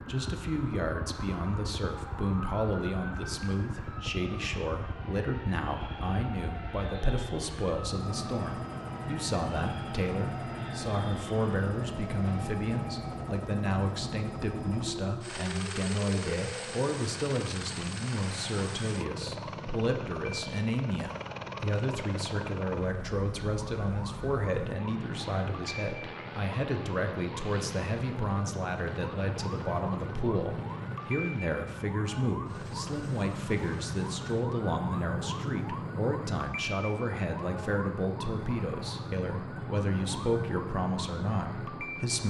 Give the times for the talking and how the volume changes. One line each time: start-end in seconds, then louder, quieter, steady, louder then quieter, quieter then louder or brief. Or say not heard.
0.1-42.2 steady.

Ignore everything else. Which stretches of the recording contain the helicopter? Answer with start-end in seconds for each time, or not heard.
0.0-42.2.